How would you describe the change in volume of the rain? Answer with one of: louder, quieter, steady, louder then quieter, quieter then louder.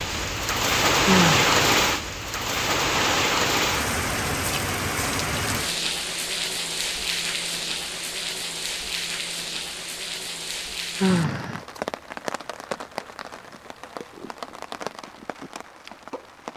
quieter.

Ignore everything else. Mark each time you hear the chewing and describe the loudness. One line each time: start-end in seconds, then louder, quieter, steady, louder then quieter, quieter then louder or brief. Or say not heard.
not heard.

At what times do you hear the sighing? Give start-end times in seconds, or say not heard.
1.1-1.6, 11.0-11.6.